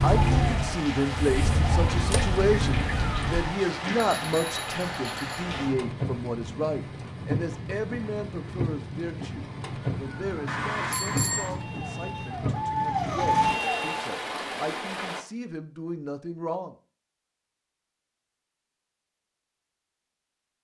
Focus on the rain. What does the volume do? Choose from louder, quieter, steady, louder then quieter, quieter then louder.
steady.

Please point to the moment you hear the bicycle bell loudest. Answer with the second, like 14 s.
11 s.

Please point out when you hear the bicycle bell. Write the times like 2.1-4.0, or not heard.
3.8-5.6, 10.4-11.5.